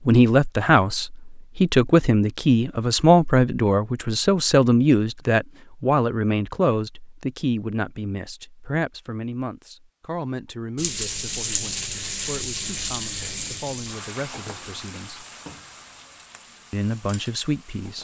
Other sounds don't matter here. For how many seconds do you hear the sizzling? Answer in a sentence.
The sizzling can be heard for 7 seconds in total.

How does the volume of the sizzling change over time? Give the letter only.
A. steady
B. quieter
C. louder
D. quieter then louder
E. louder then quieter
B.